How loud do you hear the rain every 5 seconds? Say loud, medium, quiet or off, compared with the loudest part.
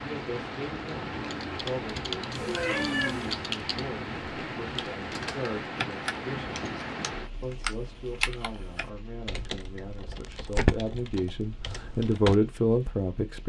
loud, loud, quiet.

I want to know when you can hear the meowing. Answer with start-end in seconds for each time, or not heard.
2.3-3.4.